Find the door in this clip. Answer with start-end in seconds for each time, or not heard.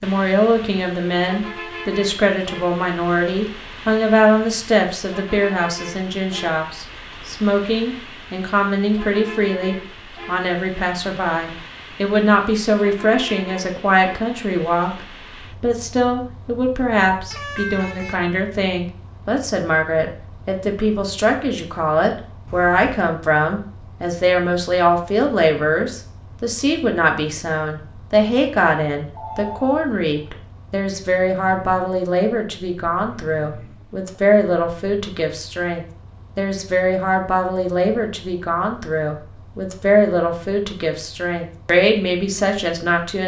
not heard.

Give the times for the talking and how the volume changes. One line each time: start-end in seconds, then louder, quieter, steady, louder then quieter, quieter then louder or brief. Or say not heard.
0.0-43.2 steady.